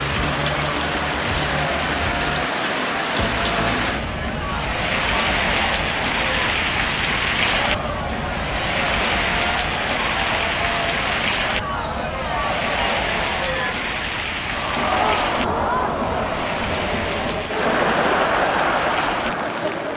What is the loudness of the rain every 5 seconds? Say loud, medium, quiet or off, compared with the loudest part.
loud, loud, loud, medium.